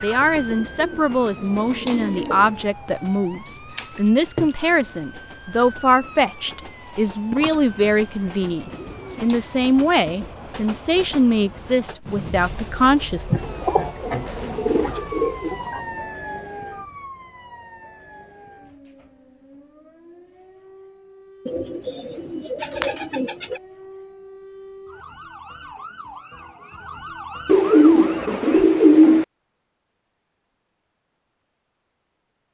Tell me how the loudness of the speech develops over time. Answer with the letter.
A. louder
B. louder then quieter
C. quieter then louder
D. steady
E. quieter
D.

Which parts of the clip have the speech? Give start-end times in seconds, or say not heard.
0.0-13.4.